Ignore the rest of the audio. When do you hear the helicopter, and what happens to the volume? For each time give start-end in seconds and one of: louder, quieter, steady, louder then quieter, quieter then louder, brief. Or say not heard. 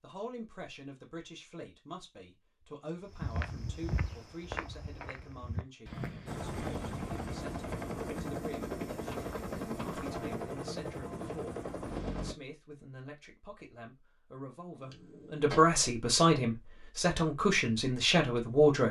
6.2-12.3 steady.